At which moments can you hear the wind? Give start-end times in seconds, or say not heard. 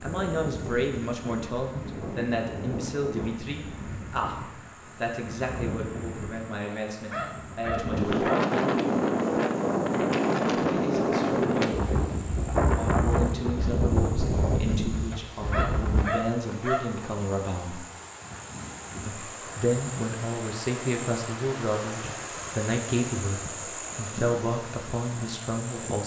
0.0-16.1.